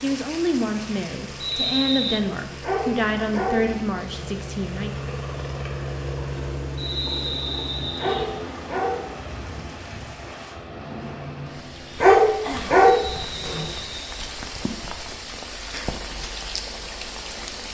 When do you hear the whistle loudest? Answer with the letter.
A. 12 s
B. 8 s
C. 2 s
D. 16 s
C.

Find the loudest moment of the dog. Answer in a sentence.
The loudest moment of the dog is at 12 seconds.